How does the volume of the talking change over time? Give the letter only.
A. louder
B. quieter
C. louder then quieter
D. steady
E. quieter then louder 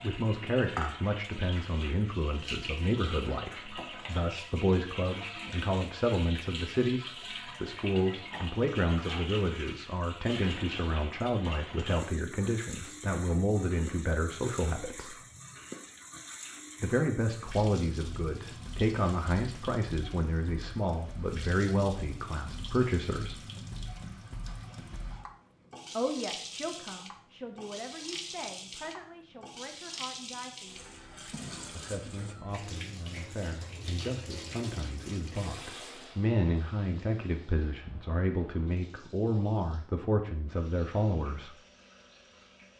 E.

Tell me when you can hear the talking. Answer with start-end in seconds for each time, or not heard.
0.0-15.2, 16.8-23.4, 25.9-30.9, 31.6-41.5.